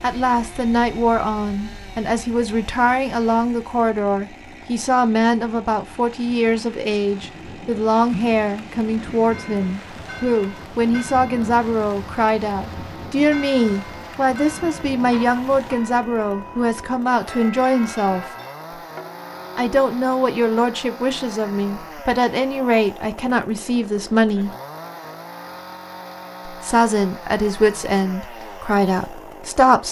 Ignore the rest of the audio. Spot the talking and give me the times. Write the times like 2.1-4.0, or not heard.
0.0-18.2, 19.6-24.5, 26.4-29.8.